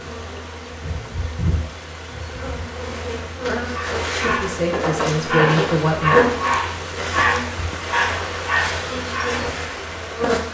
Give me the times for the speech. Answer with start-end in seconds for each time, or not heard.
4.2-6.2.